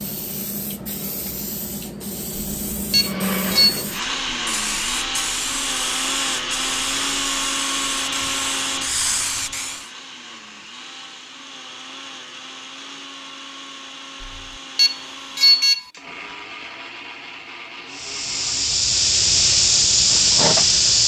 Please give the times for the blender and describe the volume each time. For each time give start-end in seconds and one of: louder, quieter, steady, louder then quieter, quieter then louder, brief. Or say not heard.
3.0-18.9 quieter.